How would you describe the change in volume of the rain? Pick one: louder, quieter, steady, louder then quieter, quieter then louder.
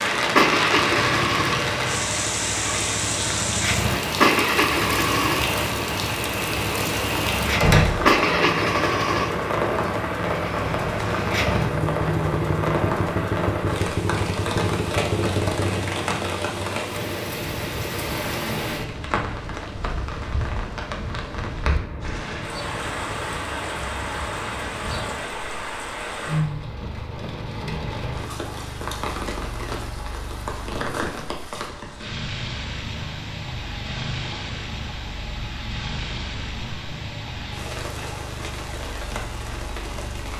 quieter.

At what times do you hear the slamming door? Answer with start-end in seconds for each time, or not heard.
7.6-8.1.